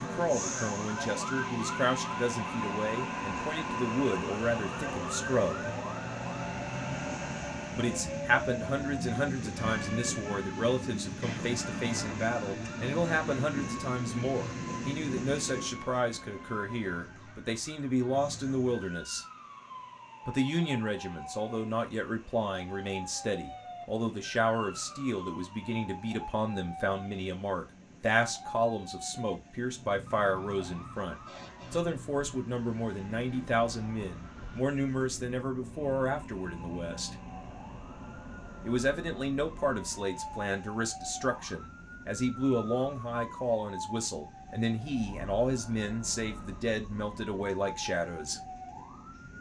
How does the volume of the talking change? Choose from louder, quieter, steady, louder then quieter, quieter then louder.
steady.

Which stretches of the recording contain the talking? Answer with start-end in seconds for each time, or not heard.
0.0-5.7, 7.8-19.2, 20.2-37.1, 38.6-48.4.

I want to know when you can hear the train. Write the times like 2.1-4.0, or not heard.
0.0-49.3.